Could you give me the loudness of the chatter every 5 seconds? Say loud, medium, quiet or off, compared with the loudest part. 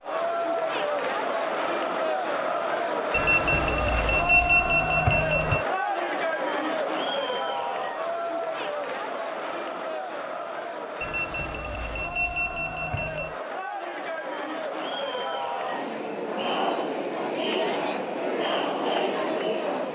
loud, loud, medium, loud.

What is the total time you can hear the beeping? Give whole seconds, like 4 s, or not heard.
5 s.